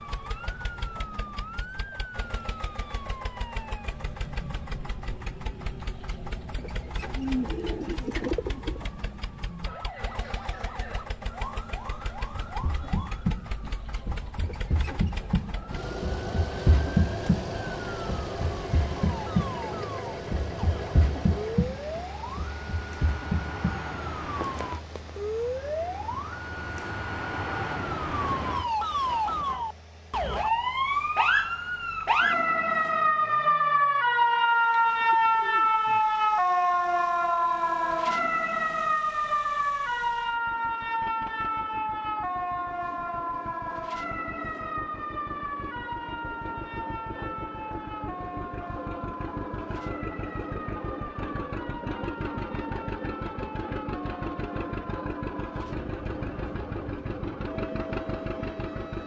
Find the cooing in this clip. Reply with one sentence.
The cooing can be heard from 7.2 to 8.9 s and from 34.9 to 36.0 s.